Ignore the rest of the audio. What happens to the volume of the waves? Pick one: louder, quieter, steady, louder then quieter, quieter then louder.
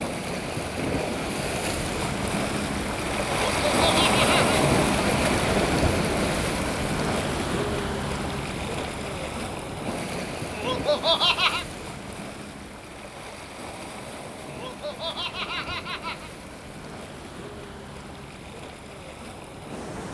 quieter.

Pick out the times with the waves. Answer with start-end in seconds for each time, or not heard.
0.0-20.0.